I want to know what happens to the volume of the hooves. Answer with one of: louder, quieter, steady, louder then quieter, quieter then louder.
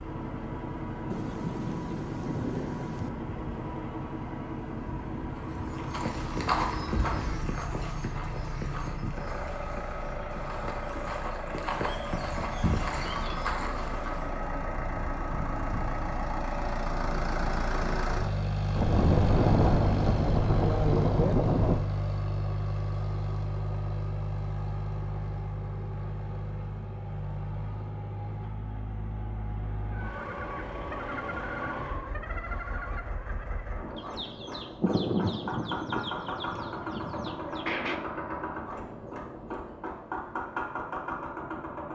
quieter then louder.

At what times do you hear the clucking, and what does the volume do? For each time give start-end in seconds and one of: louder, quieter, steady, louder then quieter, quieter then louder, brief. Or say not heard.
29.9-38.0 quieter.